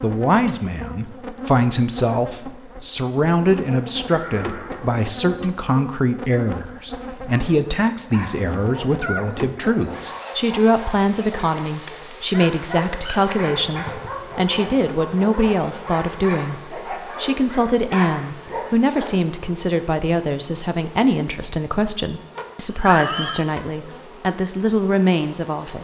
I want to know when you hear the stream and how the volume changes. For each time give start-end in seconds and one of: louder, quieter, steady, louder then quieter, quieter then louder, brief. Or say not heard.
not heard.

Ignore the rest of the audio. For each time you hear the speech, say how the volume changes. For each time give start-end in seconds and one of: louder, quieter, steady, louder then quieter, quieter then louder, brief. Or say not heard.
0.0-25.7 steady.